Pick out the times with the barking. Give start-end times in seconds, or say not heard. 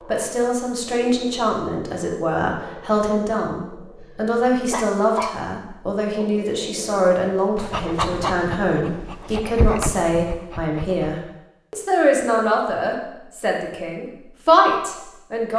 0.0-5.3, 6.2-11.2.